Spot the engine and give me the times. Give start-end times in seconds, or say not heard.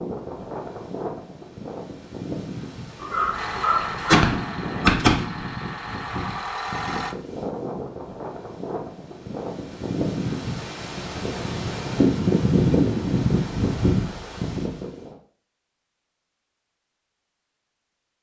3.3-7.2.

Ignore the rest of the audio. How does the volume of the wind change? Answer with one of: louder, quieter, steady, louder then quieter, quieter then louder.
louder.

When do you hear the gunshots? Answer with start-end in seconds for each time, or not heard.
3.8-5.5.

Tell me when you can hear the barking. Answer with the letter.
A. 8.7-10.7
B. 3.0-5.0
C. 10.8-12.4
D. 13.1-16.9
B.